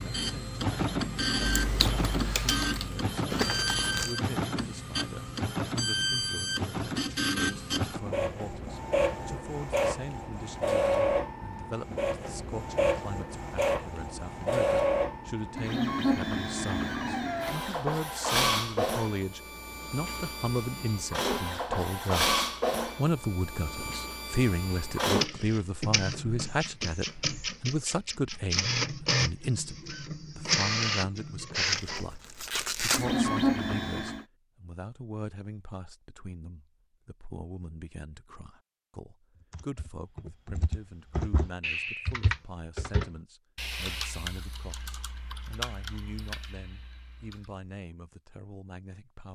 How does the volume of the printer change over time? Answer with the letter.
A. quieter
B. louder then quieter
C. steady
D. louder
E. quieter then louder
C.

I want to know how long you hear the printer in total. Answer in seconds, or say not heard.
34 s.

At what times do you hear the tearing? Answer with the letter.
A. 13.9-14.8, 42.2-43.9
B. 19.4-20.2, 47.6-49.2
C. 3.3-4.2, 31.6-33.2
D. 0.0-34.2
C.